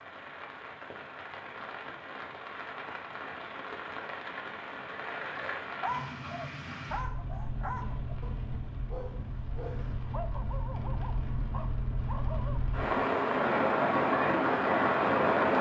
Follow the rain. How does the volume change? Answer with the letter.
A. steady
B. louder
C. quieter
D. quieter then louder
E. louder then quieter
B.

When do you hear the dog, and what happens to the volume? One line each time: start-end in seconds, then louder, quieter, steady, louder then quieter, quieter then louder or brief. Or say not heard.
5.8-12.6 steady.